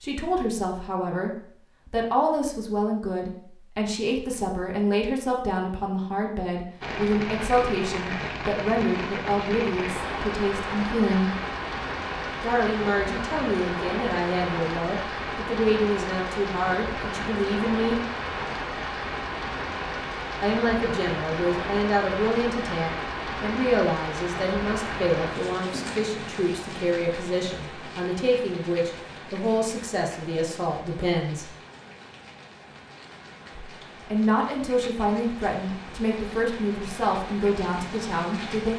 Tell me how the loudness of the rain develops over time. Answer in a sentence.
The volume of the rain goes down.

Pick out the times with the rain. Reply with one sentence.
You can hear the rain from 6.8 to 38.7 s.